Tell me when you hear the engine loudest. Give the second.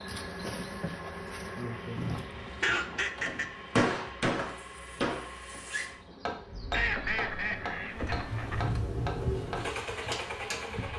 9 s.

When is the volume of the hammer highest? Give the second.
4 s.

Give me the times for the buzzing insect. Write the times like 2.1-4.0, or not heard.
0.0-10.9.